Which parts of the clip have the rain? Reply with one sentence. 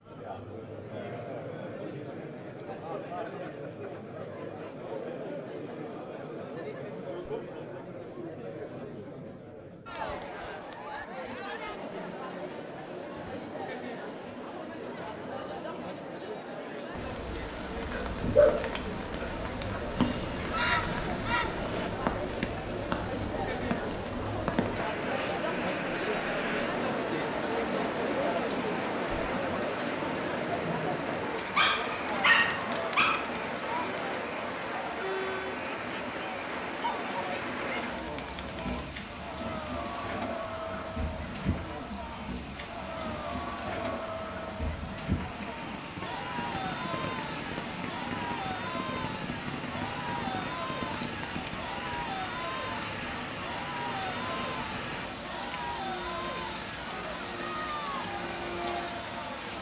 You can hear the rain from 16.9 to 59.5 s.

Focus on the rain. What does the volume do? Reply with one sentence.
The loudness of the rain stays about the same.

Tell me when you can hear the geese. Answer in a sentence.
You can hear the geese from 19.9 to 21.9 s.